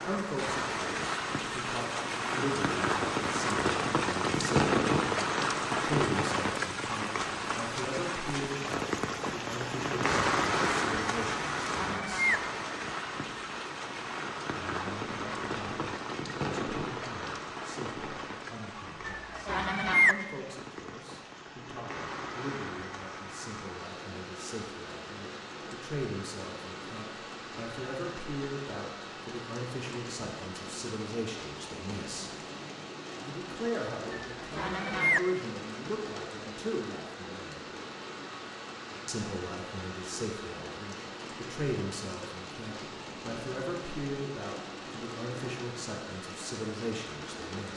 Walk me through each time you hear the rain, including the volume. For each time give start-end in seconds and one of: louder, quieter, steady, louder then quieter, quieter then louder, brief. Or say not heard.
0.0-47.7 quieter.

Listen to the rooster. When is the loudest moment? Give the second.
20 s.